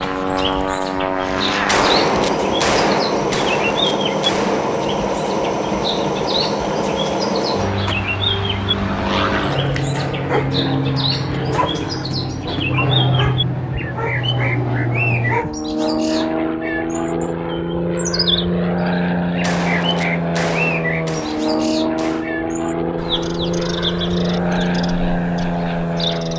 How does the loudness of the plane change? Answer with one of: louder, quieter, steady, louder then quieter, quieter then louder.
steady.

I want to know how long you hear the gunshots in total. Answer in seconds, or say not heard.
6 s.